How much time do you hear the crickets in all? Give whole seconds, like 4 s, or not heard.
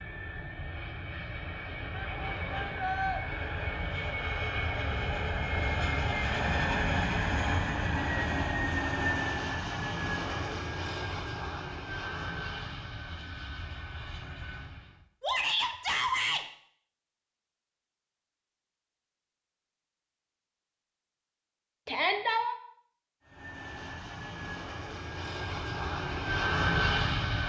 not heard.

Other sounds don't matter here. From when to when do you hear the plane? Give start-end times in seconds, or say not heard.
0.0-15.1, 23.2-27.4.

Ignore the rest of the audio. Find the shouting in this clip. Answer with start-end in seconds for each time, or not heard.
1.9-3.2, 15.2-16.4, 21.9-22.6.